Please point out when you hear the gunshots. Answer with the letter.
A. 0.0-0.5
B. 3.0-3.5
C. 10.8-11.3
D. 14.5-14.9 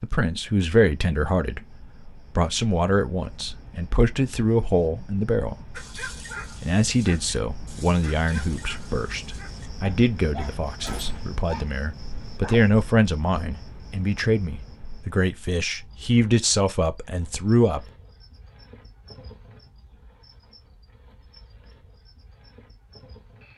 C.